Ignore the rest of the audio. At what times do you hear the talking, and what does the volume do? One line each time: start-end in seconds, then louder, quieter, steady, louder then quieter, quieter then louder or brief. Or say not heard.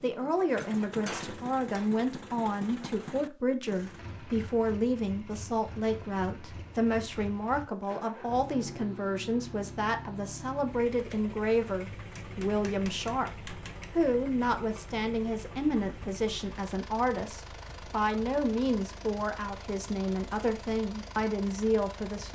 0.0-22.2 steady.